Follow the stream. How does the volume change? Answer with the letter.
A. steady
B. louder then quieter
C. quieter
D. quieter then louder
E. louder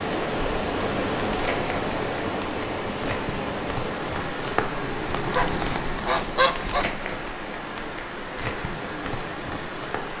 C.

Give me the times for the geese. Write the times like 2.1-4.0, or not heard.
5.3-6.9.